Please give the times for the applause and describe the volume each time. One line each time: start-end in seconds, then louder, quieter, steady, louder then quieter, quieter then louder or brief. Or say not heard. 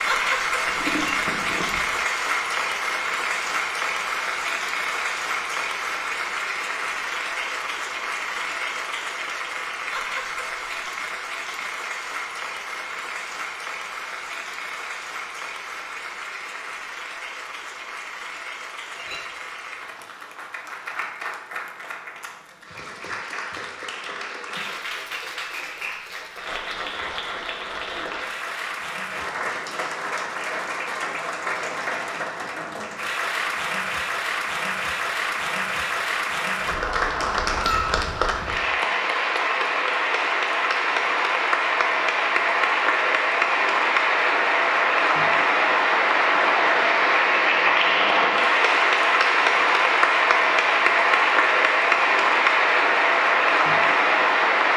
0.0-54.7 quieter then louder.